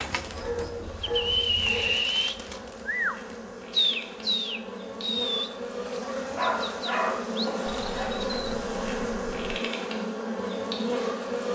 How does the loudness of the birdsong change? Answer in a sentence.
The loudness of the birdsong goes down.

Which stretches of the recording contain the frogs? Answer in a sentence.
The frogs can't be heard in this clip.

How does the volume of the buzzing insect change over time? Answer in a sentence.
The volume of the buzzing insect goes up.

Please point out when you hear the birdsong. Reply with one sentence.
The birdsong can be heard from 0.0 to 9.6 s.